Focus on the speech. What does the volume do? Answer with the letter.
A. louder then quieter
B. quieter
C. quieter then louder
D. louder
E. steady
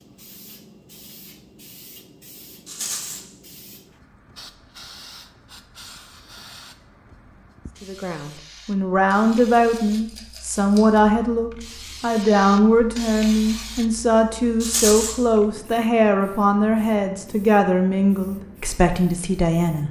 E.